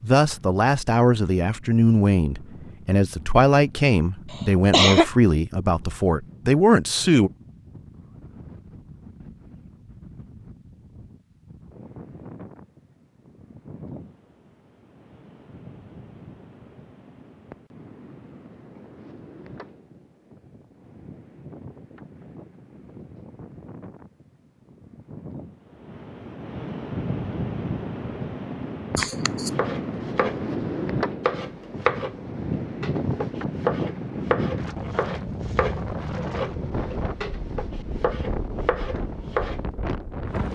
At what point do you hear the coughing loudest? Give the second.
5 s.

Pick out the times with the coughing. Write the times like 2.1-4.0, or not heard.
4.3-5.0, 28.9-29.5.